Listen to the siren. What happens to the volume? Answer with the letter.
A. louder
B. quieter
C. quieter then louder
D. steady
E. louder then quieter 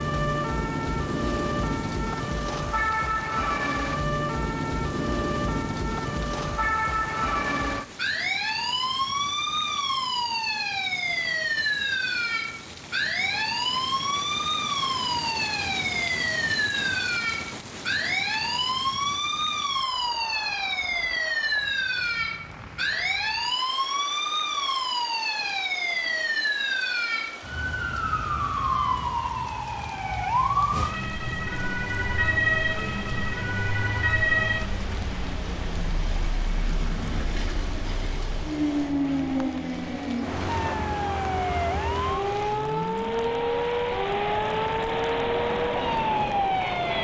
D.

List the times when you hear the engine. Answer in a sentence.
The engine can be heard from 30.7 to 46.9 s.